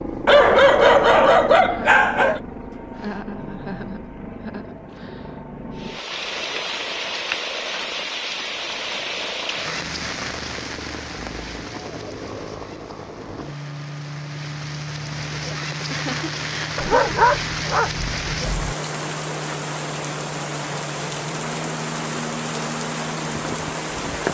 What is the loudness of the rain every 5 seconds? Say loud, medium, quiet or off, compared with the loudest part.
off, loud, medium, loud, loud.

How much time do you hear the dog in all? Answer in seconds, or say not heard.
4 s.